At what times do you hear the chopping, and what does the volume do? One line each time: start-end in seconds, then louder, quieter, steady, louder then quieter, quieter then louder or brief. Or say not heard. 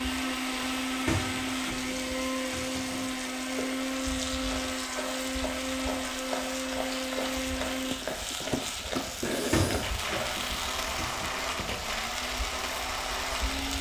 not heard.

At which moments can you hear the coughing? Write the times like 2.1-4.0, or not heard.
not heard.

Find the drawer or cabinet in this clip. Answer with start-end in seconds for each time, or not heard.
0.6-3.1, 9.1-11.4.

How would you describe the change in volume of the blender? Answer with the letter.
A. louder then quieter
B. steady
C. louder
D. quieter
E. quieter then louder
B.